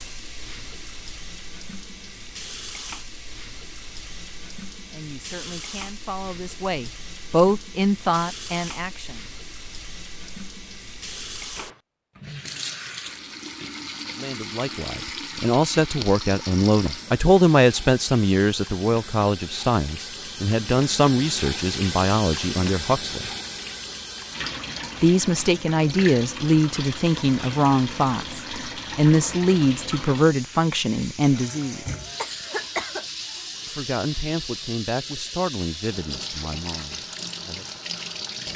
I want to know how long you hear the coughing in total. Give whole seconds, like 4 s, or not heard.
2 s.